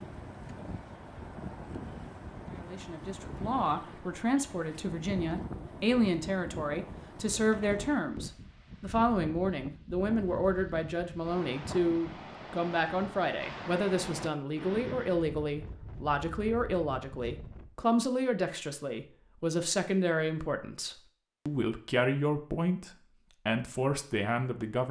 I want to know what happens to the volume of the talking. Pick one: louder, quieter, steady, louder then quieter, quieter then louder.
steady.